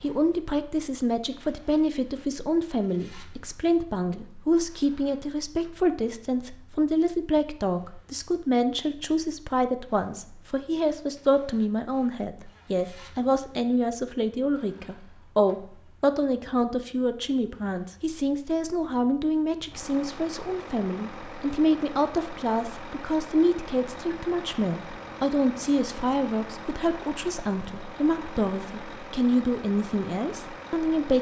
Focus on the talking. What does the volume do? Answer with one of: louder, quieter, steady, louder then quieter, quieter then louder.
steady.